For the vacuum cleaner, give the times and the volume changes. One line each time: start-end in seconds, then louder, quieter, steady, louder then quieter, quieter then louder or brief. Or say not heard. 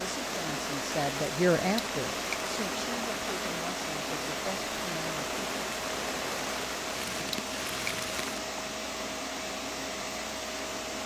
0.0-11.0 steady.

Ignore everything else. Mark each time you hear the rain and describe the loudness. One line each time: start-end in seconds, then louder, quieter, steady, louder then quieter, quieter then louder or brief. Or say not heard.
0.0-8.4 steady.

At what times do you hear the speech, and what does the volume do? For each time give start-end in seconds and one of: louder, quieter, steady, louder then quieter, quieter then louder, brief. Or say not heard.
0.0-5.3 louder then quieter.